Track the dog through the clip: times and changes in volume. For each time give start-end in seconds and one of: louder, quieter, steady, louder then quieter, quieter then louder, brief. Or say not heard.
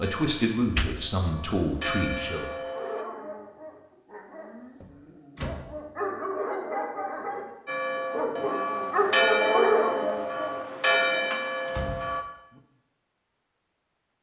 2.6-11.4 louder.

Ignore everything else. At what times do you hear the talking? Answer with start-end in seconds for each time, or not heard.
0.0-2.5.